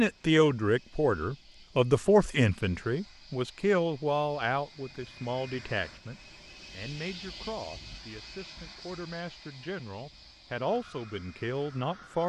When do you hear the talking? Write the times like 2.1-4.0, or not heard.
0.0-12.2.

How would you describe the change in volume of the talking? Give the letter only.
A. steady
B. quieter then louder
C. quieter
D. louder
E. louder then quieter
B.